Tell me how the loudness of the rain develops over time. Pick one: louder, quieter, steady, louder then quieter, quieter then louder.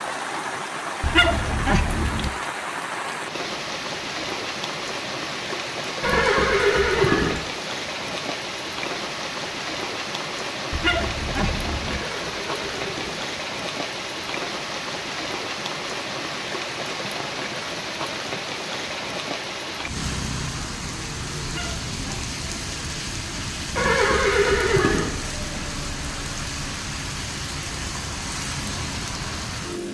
steady.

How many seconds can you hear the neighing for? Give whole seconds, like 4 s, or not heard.
4 s.